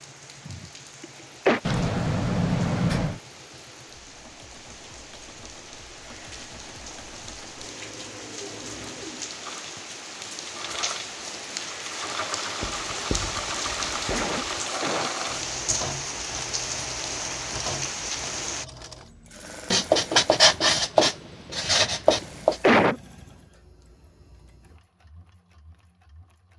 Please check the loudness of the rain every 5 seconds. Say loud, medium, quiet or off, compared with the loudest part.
quiet, medium, loud, loud, off, off.